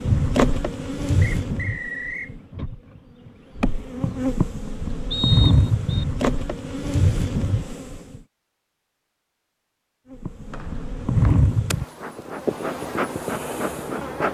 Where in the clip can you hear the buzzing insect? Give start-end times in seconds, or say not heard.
0.0-8.2, 10.1-14.2.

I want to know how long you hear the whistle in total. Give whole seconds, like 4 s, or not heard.
3 s.